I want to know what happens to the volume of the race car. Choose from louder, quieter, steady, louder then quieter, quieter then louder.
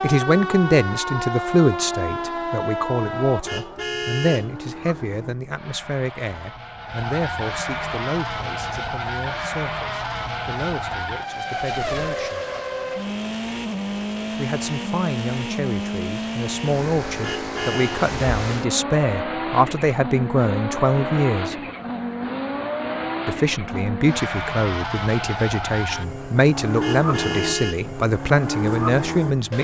louder.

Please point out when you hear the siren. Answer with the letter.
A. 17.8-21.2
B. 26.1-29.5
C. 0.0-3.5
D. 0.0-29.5
C.